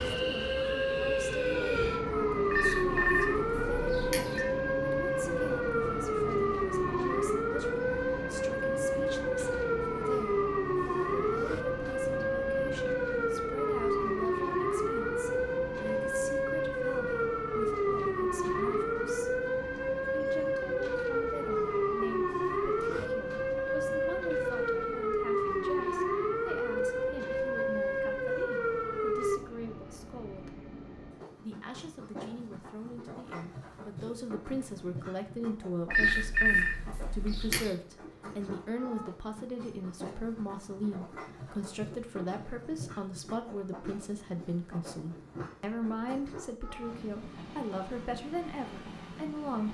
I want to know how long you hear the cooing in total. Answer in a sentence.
The cooing can't be heard in this clip.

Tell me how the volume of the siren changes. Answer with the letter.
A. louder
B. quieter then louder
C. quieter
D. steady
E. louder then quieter
D.